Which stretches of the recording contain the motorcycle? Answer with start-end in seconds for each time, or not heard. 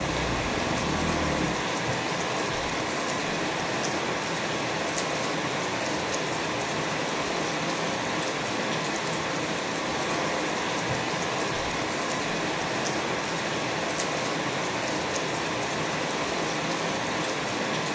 0.0-1.6.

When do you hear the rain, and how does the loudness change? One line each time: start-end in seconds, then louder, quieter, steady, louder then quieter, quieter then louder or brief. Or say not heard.
0.0-17.8 steady.